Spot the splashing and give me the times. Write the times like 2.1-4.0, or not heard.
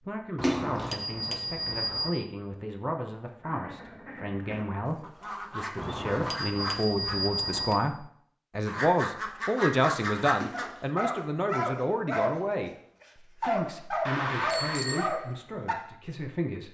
0.4-0.9, 10.4-10.9.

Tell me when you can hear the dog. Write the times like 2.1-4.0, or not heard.
10.5-15.8.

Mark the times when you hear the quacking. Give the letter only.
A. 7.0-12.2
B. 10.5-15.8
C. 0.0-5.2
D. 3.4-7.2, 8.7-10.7
D.